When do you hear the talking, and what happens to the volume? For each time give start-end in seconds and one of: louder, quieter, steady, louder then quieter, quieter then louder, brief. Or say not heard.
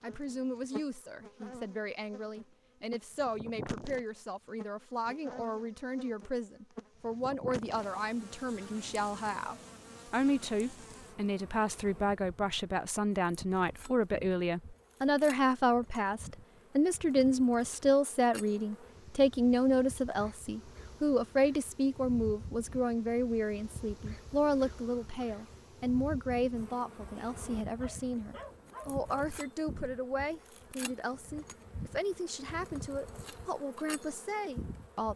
0.0-35.1 louder then quieter.